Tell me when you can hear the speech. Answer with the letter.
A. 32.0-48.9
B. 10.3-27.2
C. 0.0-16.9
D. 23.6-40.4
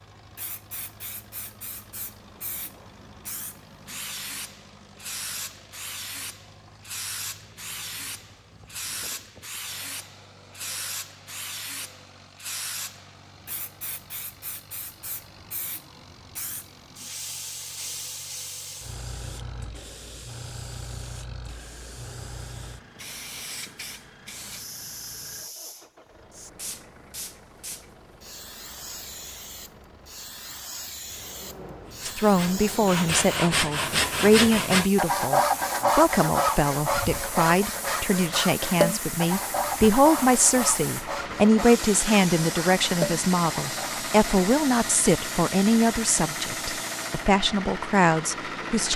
A.